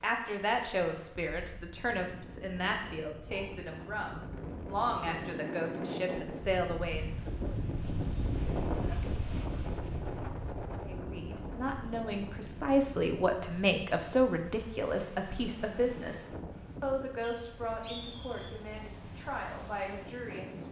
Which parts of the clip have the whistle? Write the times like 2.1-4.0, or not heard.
17.2-18.6.